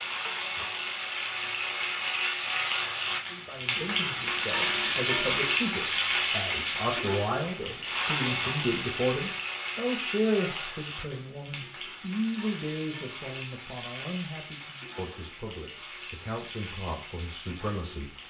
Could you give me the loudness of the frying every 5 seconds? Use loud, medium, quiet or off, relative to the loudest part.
loud, loud, medium, quiet.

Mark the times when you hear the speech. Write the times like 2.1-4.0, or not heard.
3.3-18.1.